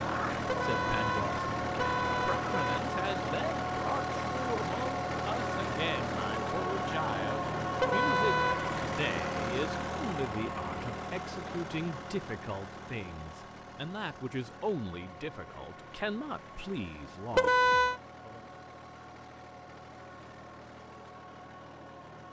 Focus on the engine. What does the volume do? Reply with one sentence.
The loudness of the engine goes down.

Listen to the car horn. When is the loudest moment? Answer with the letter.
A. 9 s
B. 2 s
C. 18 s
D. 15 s
C.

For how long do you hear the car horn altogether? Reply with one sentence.
You can hear the car horn for 4 seconds altogether.